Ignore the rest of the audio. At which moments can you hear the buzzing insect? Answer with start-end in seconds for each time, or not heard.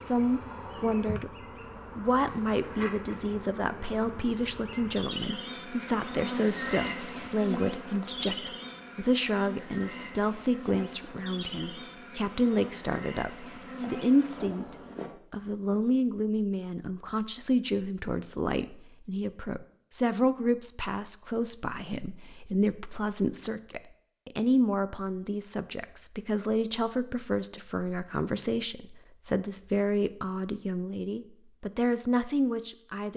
0.0-15.2.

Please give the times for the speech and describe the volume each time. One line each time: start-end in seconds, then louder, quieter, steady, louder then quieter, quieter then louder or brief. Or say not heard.
0.0-1.3 brief
1.9-33.1 steady.